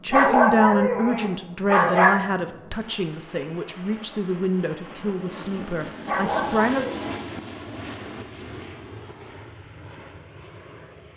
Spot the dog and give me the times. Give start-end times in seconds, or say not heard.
0.1-2.1, 6.0-7.2.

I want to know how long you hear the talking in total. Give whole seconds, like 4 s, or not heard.
7 s.